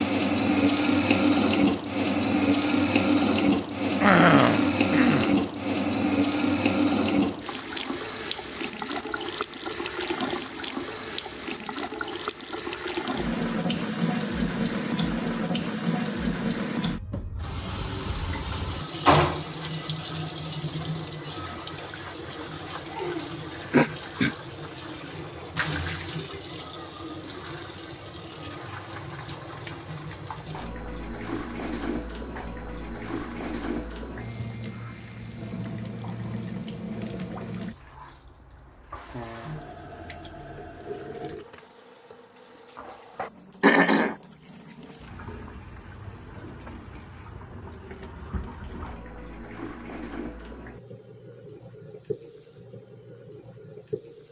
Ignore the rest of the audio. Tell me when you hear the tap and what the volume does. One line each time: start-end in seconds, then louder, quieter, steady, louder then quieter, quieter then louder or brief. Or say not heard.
0.0-54.2 quieter.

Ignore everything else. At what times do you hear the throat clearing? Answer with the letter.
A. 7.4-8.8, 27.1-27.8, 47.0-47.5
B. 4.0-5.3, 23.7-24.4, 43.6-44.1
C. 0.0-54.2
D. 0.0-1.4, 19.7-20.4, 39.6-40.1
B.